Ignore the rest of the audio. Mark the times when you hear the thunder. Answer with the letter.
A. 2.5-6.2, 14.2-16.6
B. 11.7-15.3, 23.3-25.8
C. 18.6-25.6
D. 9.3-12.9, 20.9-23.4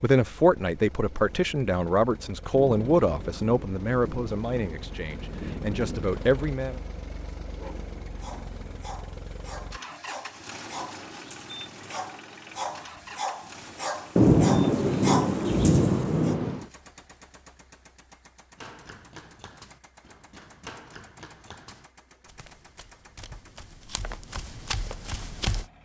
A.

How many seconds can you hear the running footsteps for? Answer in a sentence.
You can hear the running footsteps for 7 seconds altogether.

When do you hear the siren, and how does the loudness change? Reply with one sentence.
The siren can't be heard in this clip.